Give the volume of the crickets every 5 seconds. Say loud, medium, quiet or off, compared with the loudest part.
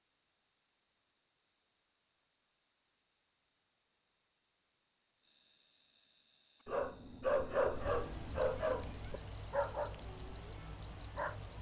quiet, loud, loud.